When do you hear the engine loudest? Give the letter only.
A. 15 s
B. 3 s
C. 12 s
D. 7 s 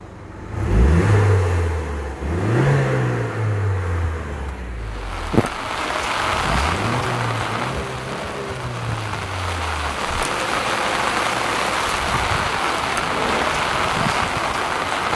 B.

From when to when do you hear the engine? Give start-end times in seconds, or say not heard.
0.0-15.1.